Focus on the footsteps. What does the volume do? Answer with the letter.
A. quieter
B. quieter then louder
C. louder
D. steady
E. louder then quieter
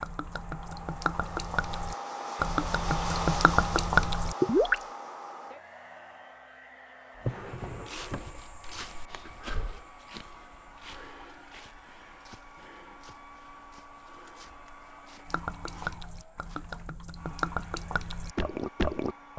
A.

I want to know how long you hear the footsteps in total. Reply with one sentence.
You can hear the footsteps for 9 seconds altogether.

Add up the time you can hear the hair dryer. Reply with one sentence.
You can hear the hair dryer for 19 seconds altogether.